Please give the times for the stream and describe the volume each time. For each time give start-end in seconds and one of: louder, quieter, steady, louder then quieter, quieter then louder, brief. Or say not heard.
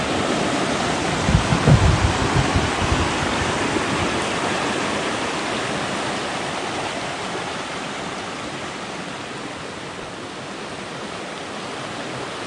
0.0-12.4 quieter.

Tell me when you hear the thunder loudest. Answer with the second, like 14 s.
2 s.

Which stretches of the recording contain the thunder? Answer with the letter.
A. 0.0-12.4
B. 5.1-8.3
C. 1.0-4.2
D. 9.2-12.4
C.